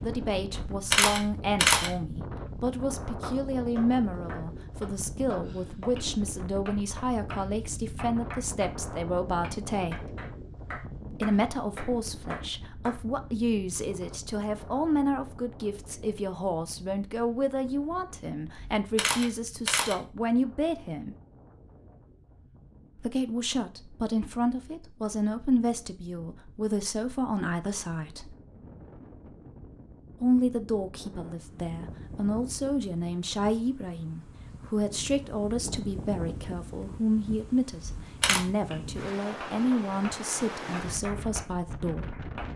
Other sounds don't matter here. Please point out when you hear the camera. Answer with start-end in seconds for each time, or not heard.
0.5-1.9, 18.6-19.9, 37.8-38.4.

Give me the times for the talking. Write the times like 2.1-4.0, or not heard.
0.0-10.2, 11.1-21.1, 22.9-28.4, 30.2-42.2.